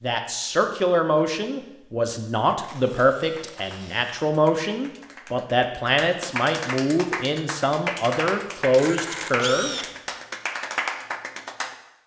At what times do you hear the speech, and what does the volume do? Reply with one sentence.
You can hear the speech from 0.0 to 9.8 s, at a steady volume.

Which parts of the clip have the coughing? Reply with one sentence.
The coughing can't be heard in this clip.